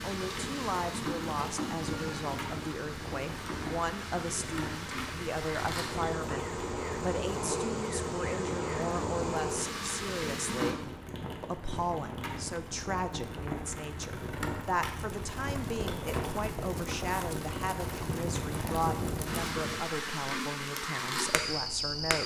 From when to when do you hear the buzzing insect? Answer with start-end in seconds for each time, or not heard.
0.0-10.8, 19.2-22.2.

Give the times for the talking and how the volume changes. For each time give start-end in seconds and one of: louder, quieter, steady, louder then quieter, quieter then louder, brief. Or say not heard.
0.0-22.2 steady.